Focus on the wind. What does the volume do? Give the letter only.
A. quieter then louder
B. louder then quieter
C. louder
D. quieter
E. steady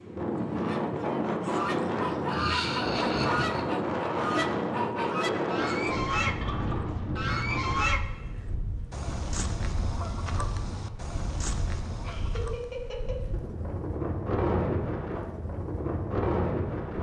A.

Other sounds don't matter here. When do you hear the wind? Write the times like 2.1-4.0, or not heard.
0.0-16.9.